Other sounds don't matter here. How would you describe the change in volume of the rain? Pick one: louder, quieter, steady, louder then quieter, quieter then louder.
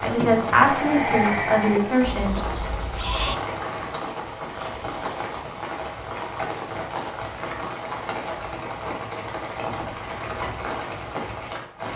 steady.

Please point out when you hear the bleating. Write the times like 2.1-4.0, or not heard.
0.0-3.4.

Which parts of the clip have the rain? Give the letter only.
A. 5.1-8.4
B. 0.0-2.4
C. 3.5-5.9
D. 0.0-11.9
D.